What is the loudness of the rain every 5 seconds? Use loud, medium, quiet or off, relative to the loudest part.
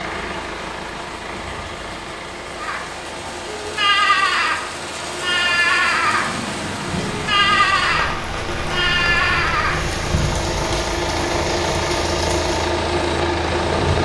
medium, loud, loud.